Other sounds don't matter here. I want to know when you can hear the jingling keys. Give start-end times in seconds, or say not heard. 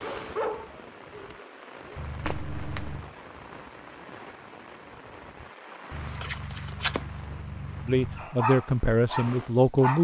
1.9-3.1, 5.9-8.3.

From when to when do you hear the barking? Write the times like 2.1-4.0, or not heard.
0.0-2.0, 8.2-9.9.